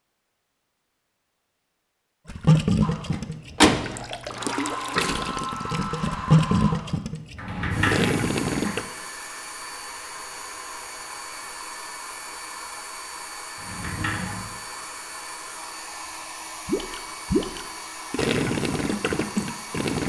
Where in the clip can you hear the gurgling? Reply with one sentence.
The gurgling can be heard from 2.2 to 8.8 s and from 16.6 to 20.0 s.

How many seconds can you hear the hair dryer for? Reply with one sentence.
The hair dryer can be heard for 17 seconds in total.